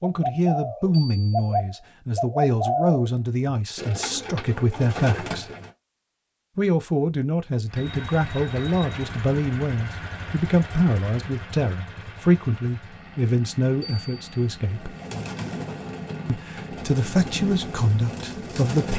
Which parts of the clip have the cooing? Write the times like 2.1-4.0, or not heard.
0.0-5.8, 14.7-18.9.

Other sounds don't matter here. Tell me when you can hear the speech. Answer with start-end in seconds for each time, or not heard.
0.0-5.5, 6.5-14.9, 16.2-18.9.